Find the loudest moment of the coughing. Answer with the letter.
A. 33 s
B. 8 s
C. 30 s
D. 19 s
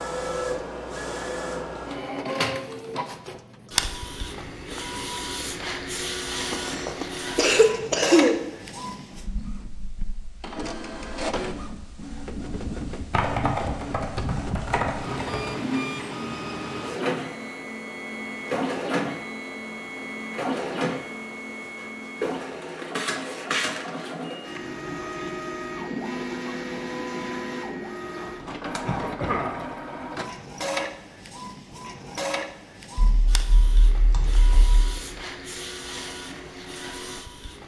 B.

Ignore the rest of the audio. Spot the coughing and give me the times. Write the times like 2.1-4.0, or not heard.
6.5-8.3, 28.9-29.6.